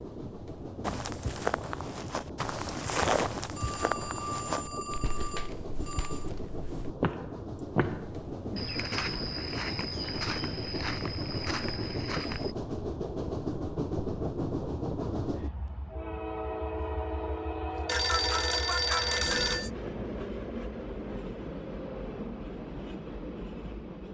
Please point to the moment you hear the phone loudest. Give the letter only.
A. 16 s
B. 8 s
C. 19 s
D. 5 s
C.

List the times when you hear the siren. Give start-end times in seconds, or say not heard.
not heard.